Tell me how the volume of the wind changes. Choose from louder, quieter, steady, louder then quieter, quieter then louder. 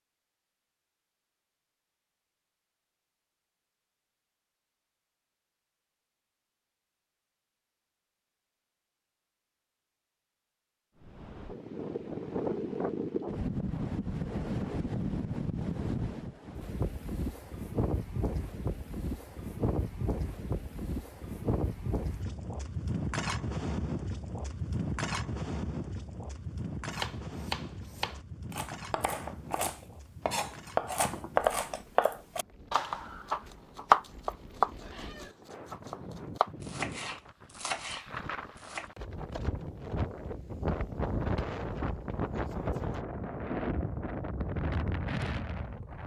quieter then louder.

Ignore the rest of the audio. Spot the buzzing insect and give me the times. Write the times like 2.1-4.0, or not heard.
not heard.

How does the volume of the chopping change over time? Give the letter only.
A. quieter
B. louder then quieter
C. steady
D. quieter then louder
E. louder
B.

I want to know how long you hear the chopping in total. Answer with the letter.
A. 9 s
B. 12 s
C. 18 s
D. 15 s
B.